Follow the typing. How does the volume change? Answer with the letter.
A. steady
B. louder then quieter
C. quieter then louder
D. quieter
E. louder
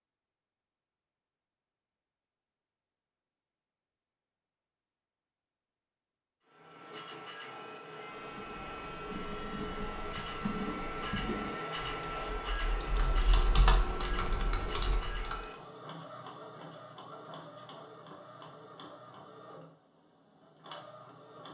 B.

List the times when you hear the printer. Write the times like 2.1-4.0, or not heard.
6.5-21.4.